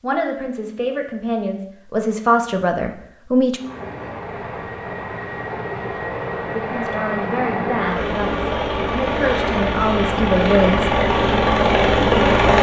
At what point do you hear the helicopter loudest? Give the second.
12 s.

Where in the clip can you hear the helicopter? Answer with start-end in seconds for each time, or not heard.
3.5-12.5.